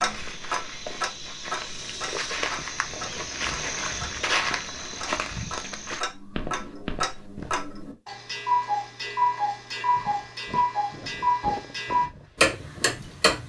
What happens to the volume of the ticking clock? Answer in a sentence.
The volume of the ticking clock goes down, then up.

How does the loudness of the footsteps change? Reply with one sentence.
The volume of the footsteps goes up, then down.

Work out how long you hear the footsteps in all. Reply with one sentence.
The footsteps can be heard for 11 seconds in total.